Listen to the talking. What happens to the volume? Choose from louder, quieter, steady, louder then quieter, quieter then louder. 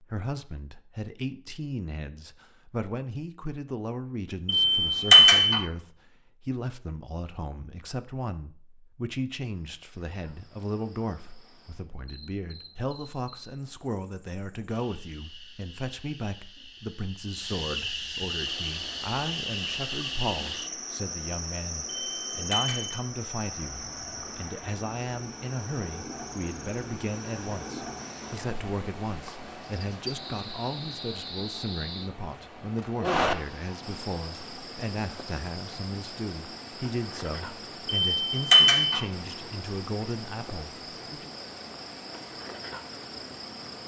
steady.